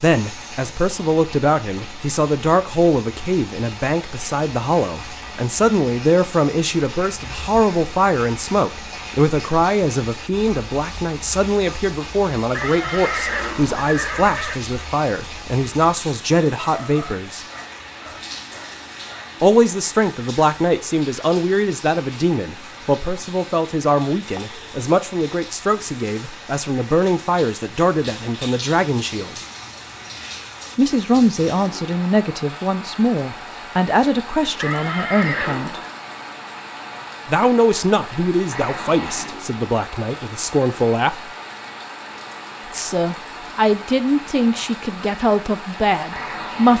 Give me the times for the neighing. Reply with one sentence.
The neighing can be heard from 12.5 to 14.6 s and from 34.5 to 35.9 s.